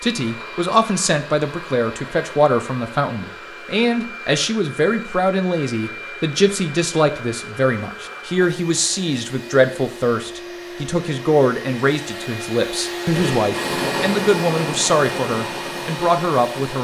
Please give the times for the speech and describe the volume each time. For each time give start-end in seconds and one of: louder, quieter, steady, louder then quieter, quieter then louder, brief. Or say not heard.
0.0-16.7 steady.